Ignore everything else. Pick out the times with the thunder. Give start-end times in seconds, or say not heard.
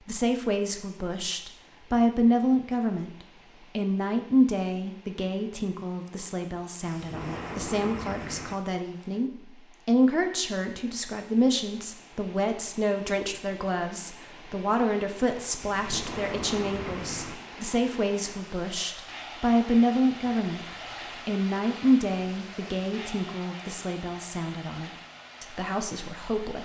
6.8-8.6, 15.6-17.4.